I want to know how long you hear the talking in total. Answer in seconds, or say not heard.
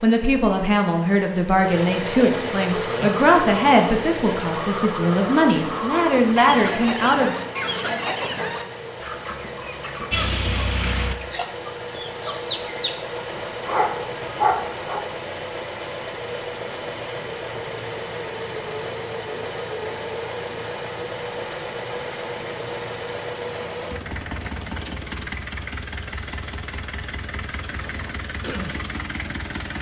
7 s.